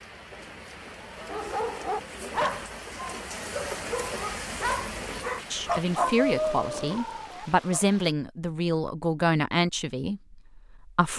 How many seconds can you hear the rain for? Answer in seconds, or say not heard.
8 s.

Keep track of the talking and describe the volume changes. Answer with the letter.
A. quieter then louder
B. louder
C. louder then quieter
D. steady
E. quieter
E.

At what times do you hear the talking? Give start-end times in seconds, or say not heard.
5.5-11.1.